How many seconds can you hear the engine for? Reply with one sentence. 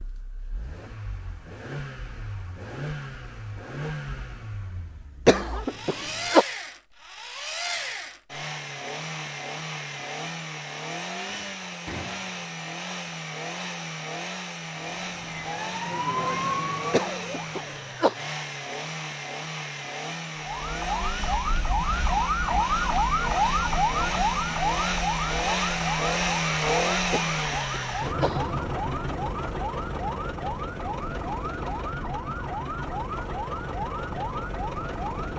The engine can be heard for 35 seconds in total.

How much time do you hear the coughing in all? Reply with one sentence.
The coughing can be heard for 4 seconds in total.